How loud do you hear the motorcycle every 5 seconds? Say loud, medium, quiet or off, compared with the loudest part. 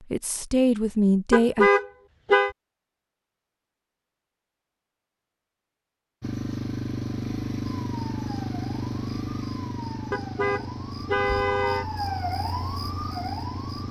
off, loud, medium.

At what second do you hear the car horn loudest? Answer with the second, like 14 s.
2 s.